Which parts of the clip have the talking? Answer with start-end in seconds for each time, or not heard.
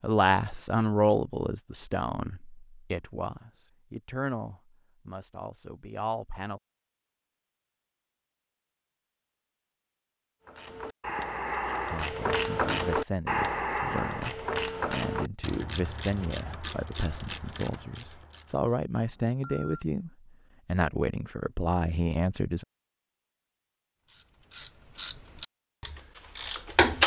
0.0-6.6, 11.9-22.6.